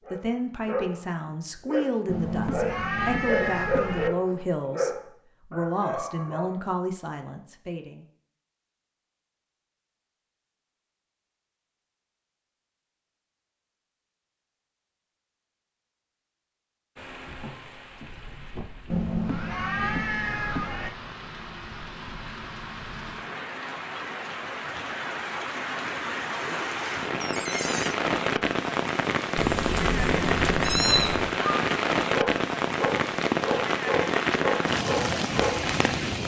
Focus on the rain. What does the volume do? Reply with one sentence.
The volume of the rain goes up.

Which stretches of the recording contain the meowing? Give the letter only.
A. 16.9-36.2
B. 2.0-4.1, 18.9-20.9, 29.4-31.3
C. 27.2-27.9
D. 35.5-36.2
B.